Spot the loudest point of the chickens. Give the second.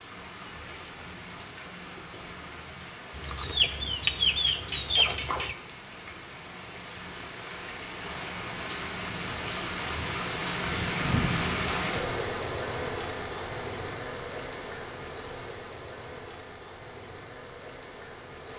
4 s.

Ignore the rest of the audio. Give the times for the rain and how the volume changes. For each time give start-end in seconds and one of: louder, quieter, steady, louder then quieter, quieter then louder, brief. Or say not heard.
0.0-18.5 louder then quieter.